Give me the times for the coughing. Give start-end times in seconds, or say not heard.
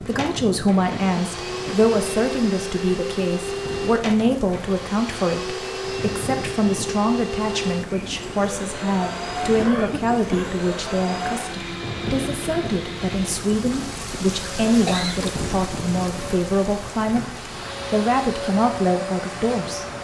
0.9-1.8, 9.4-10.6, 14.8-15.3.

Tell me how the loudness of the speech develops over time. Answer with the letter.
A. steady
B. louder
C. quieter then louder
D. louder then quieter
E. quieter
A.